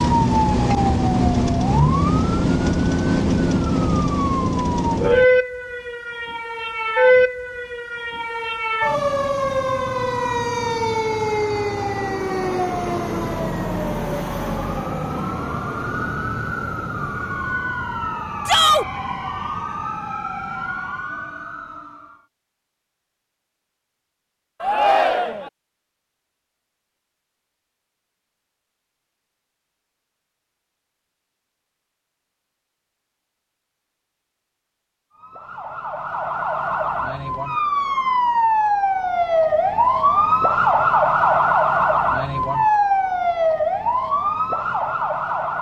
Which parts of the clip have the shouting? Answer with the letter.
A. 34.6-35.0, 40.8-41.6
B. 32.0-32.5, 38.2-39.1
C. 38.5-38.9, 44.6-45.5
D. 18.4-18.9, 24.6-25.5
D.